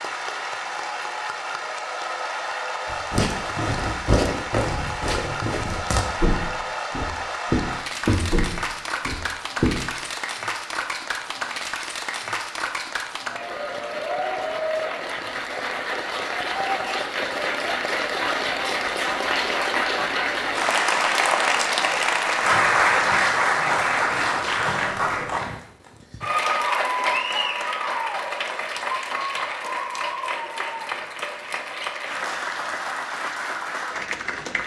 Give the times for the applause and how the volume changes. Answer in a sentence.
You can hear the applause from 0.0 to 34.6 s, getting louder then quieter.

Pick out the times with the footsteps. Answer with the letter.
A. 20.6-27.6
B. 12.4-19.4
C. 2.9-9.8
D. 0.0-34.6
C.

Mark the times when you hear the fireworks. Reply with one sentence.
You can't hear the fireworks here.